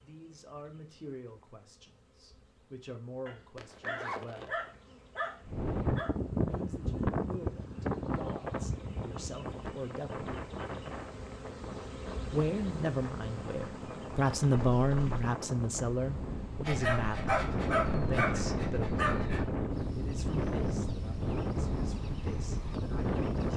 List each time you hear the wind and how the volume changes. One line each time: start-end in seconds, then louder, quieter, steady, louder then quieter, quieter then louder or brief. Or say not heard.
5.4-23.5 quieter then louder.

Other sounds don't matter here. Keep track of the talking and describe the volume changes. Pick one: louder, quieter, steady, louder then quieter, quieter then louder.
louder then quieter.